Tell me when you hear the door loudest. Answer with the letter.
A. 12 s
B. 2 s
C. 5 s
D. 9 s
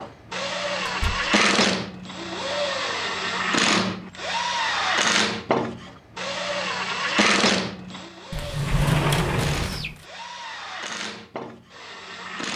D.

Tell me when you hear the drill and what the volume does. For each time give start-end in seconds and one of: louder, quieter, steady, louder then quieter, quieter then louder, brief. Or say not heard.
0.0-12.5 quieter.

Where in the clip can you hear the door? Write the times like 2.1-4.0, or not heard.
0.8-1.3, 8.3-9.9.